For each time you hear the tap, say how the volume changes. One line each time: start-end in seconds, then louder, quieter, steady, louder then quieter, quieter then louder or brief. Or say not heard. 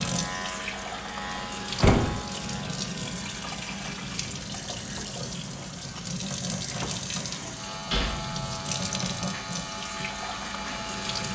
0.0-11.3 steady.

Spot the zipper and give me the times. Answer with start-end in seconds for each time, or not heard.
not heard.